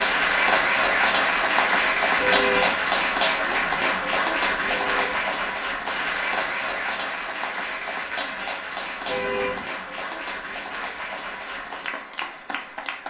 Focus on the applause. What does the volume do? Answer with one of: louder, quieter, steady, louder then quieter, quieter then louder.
quieter.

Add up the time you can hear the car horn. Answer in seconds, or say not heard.
2 s.